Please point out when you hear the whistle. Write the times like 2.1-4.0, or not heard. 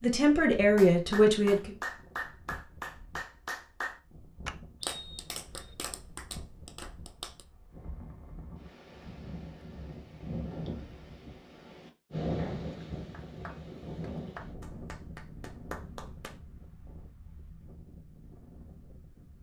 4.8-5.8.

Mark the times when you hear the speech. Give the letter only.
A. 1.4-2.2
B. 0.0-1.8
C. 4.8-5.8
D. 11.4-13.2
B.